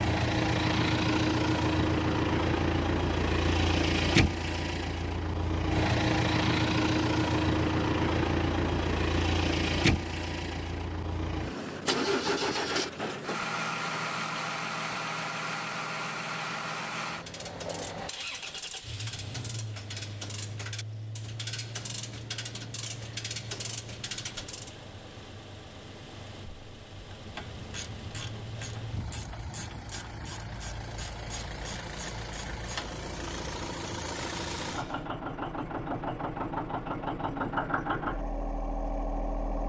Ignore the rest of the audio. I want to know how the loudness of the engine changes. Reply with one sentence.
The volume of the engine goes down, then up.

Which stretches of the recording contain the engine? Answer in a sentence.
The engine can be heard from 0.0 to 39.6 s.